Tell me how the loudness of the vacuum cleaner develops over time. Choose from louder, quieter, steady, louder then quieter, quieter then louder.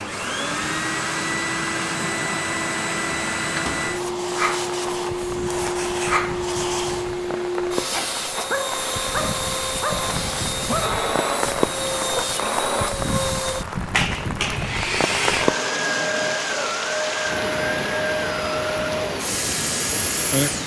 steady.